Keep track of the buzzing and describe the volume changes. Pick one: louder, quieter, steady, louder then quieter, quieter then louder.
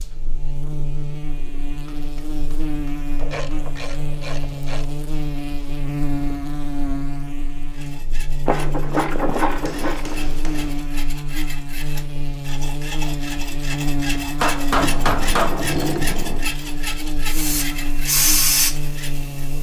steady.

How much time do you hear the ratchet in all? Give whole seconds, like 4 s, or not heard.
5 s.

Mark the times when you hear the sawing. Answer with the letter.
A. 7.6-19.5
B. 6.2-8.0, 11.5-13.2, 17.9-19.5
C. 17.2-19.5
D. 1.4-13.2
A.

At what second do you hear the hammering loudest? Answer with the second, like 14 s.
15 s.